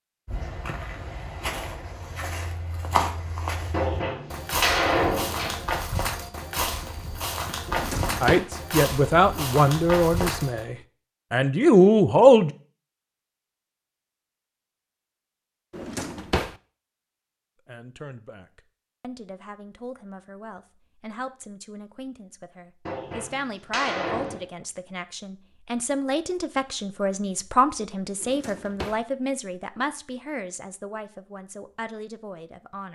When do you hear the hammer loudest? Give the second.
5 s.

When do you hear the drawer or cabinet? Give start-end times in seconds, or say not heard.
7.7-8.5, 15.7-16.6, 28.2-29.1.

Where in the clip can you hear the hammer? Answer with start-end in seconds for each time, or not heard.
3.7-5.7, 22.9-24.4.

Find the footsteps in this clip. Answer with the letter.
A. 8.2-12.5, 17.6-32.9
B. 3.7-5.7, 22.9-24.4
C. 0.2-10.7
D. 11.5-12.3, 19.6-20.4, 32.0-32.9
C.